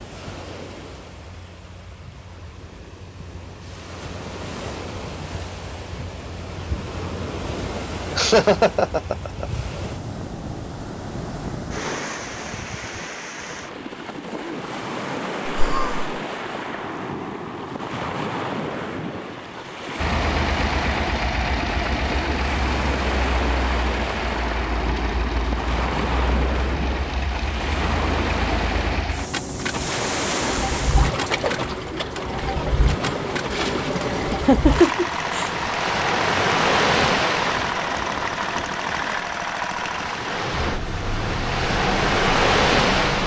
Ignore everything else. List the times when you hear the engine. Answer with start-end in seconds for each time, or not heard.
19.9-43.2.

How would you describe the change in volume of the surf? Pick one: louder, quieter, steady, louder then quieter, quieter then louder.
louder.